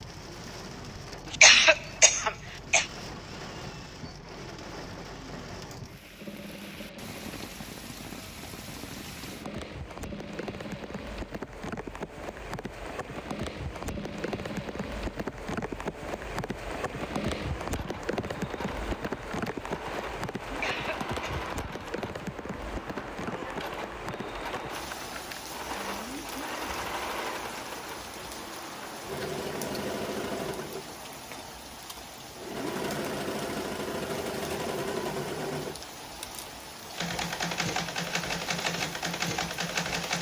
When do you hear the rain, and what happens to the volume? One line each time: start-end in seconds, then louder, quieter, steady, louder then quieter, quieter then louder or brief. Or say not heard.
0.0-40.1 louder then quieter.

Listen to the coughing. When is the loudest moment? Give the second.
2 s.